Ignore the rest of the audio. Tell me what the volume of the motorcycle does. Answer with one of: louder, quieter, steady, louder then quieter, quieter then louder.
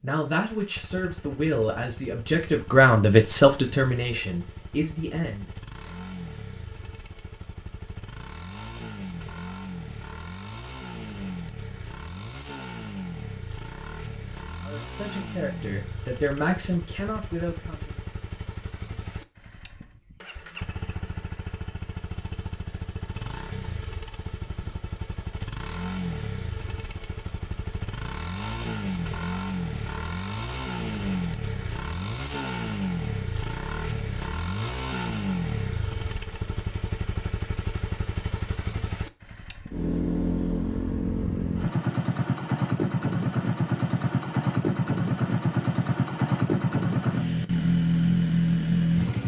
louder.